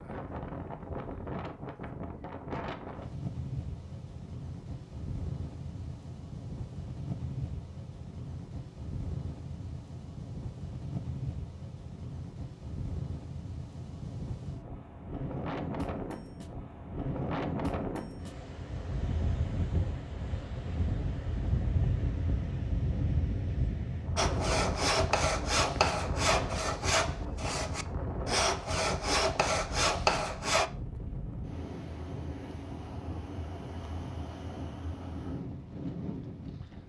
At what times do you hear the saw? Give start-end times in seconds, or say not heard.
24.1-30.7.